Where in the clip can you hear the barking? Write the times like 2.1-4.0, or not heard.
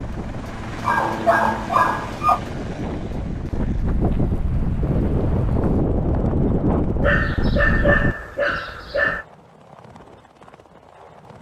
0.8-2.4, 7.0-9.2.